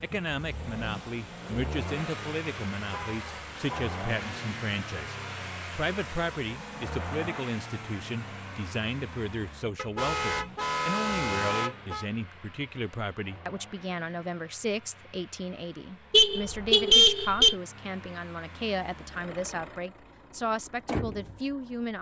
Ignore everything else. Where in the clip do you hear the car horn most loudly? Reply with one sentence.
The loudest moment of the car horn is at 17 seconds.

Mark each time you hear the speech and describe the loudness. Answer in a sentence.
You can hear the speech from 0.0 to 21.9 s, at a steady volume.